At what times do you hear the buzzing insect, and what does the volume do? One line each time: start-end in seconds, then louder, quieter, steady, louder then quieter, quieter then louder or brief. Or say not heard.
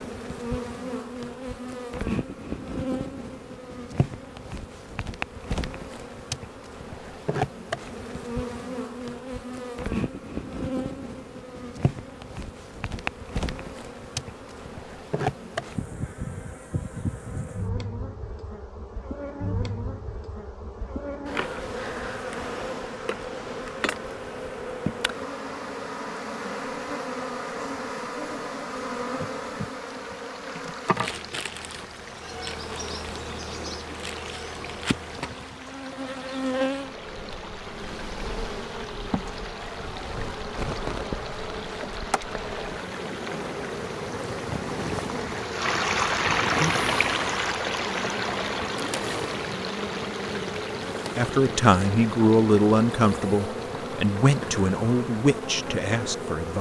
0.0-56.5 steady.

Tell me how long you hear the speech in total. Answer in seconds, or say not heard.
5 s.